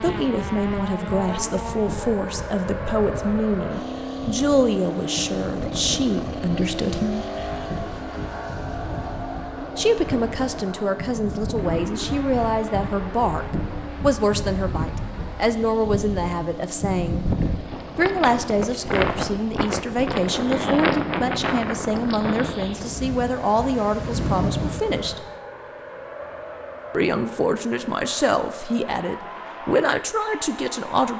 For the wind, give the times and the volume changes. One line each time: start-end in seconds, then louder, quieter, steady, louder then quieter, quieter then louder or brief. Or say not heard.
0.0-25.3 louder.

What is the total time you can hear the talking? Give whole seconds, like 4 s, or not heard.
26 s.